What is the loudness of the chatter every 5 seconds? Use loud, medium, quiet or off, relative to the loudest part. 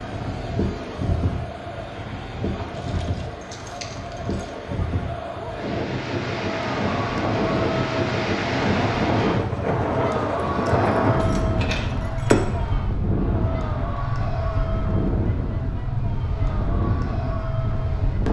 medium, loud, loud, medium.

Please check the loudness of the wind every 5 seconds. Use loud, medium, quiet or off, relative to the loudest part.
medium, loud, loud, loud.